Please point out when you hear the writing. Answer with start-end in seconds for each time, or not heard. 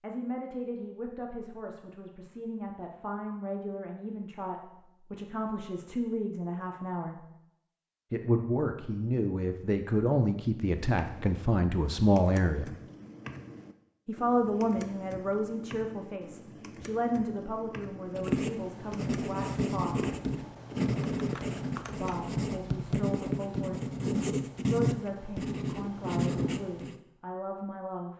18.1-27.0.